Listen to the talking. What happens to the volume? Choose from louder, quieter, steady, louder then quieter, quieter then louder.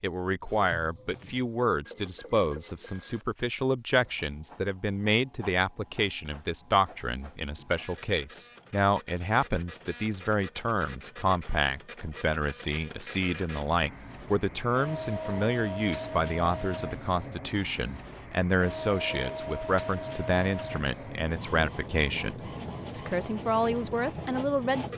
steady.